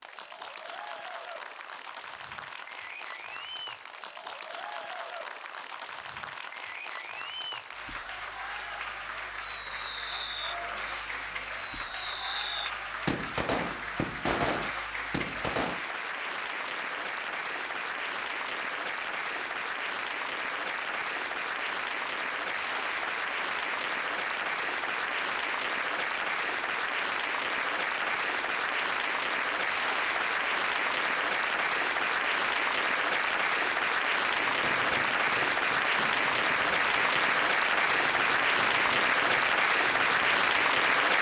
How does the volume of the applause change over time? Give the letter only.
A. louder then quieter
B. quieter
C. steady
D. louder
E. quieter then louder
D.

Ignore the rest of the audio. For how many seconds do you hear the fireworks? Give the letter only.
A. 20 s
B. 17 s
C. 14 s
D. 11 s
C.